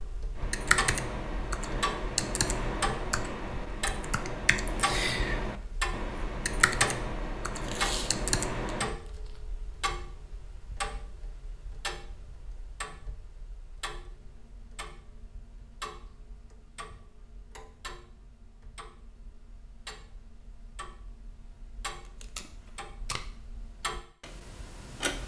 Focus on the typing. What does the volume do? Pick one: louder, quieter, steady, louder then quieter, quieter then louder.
steady.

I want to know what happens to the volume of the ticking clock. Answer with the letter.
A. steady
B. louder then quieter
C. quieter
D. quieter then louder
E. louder
C.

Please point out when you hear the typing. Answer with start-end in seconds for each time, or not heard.
0.3-8.9.